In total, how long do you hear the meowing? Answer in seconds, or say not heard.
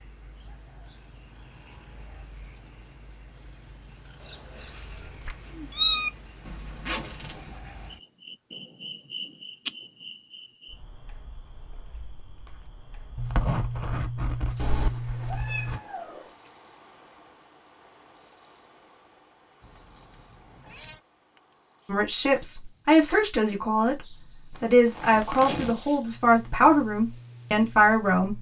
5 s.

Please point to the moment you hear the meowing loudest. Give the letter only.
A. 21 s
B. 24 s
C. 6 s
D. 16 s
C.